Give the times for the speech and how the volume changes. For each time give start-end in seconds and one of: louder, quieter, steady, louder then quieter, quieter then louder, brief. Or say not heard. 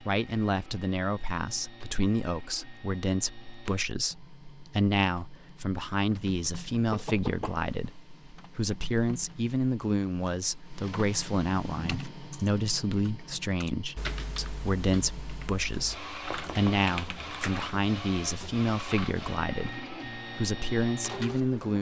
0.0-21.7 steady.